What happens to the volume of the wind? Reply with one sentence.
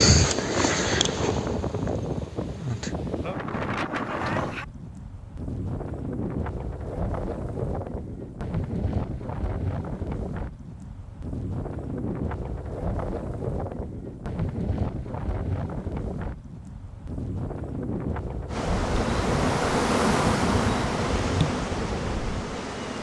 The loudness of the wind stays about the same.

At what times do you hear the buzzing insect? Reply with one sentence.
The buzzing insect can be heard from 0.0 to 3.0 s and from 18.4 to 22.9 s.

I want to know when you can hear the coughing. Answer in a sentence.
You can't hear the coughing here.